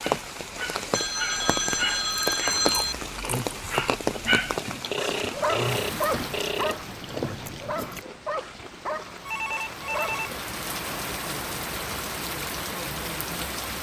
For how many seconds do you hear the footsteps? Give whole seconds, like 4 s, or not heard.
not heard.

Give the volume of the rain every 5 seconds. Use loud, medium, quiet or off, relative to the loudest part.
loud, medium, loud.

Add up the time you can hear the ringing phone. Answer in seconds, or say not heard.
5 s.